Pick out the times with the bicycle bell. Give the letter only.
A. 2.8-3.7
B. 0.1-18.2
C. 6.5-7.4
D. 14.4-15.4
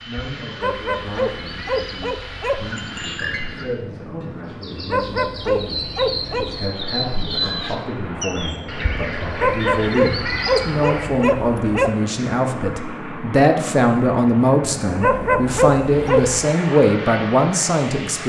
A.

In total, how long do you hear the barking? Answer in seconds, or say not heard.
8 s.